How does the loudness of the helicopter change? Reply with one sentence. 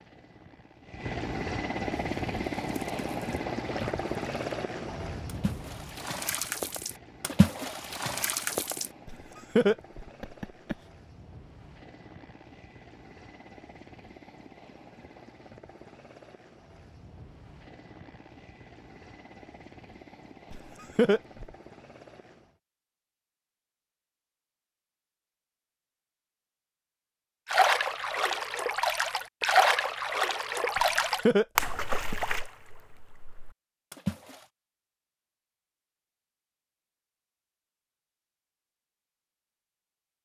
The loudness of the helicopter goes down.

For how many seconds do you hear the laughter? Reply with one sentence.
The laughter can be heard for 4 seconds in total.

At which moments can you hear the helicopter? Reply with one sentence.
You can hear the helicopter from 0.0 to 22.6 s.